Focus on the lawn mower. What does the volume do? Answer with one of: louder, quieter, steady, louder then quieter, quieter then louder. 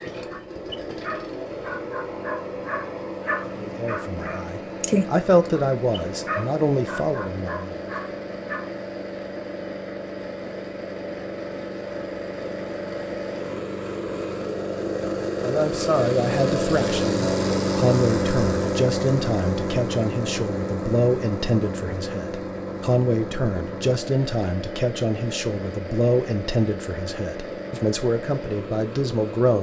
louder then quieter.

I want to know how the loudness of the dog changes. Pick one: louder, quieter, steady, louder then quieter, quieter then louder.
louder then quieter.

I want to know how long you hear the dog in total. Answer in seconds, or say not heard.
9 s.